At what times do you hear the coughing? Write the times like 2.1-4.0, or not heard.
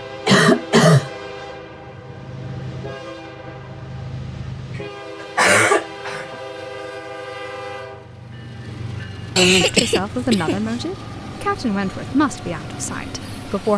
0.2-1.1, 5.3-6.2, 9.3-10.8.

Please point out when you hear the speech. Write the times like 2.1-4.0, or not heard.
9.4-13.7.